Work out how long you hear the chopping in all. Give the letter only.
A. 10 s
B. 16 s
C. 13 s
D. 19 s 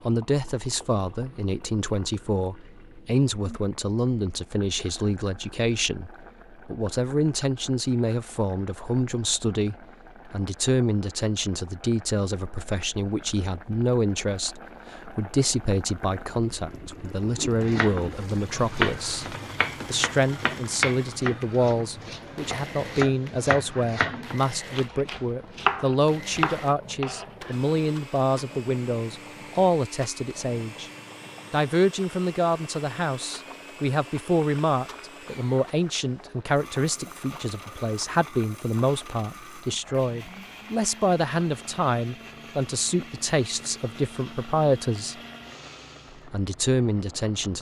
A.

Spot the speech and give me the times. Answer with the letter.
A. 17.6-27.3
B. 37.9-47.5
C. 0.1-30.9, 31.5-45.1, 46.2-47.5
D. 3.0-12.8
C.